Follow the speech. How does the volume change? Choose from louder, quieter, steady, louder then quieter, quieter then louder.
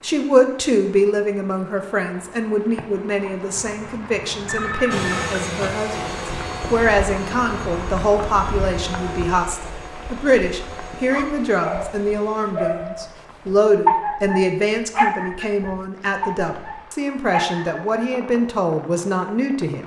steady.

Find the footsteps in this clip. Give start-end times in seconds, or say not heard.
not heard.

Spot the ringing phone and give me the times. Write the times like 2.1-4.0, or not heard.
4.5-5.3.